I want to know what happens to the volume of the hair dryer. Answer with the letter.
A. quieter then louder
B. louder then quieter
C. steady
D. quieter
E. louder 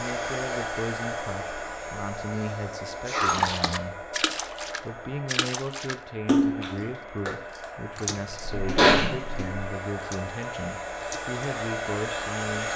A.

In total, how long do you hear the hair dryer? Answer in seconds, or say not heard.
13 s.